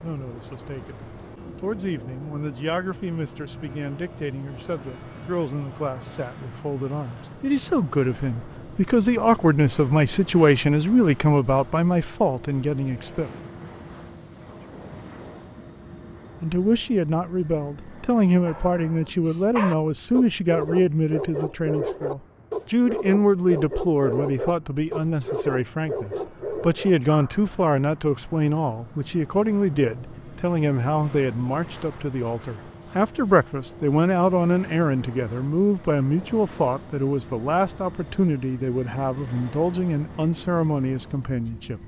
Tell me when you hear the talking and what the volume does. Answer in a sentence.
The talking can be heard from 0.0 to 13.3 s, getting louder; and from 16.4 to 41.8 s, at a steady volume.